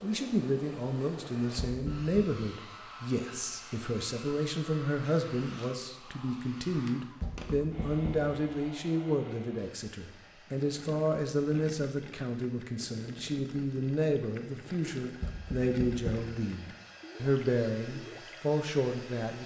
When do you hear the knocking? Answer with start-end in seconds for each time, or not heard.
1.6-2.1, 7.2-8.3, 15.2-16.2.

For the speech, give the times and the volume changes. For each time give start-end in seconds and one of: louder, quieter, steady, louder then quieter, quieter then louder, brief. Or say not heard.
0.0-19.4 steady.